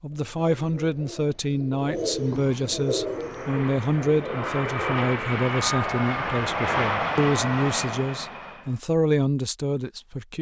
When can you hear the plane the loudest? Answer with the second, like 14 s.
7 s.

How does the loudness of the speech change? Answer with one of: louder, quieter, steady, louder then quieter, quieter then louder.
steady.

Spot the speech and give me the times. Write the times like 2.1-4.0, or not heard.
0.0-10.3.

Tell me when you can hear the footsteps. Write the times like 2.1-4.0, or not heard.
not heard.